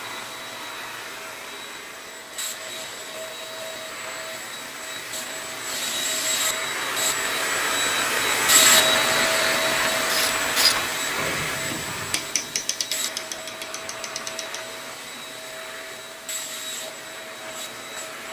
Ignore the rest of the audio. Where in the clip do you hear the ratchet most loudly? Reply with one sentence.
The volume of the ratchet peaks at 11 seconds.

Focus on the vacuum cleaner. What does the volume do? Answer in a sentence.
The volume of the vacuum cleaner goes up, then down.